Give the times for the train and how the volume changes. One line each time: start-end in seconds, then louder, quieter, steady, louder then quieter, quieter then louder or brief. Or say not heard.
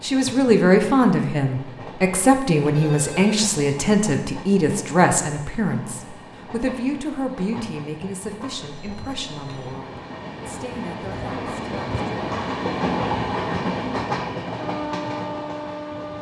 0.0-16.1 louder.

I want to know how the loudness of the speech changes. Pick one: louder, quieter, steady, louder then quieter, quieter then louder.
quieter.